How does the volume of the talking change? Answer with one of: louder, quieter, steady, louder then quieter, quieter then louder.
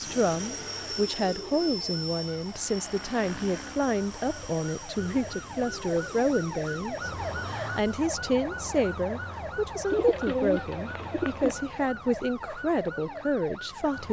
steady.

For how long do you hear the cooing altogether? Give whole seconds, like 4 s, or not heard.
6 s.